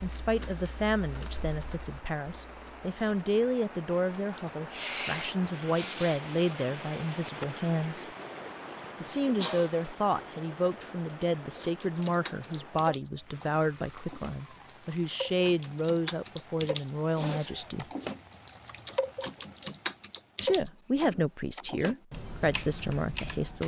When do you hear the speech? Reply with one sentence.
The speech can be heard from 0.0 to 8.1 s, from 9.0 to 17.9 s and from 20.4 to 23.6 s.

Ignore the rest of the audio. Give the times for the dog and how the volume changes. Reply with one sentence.
You can't hear the dog here.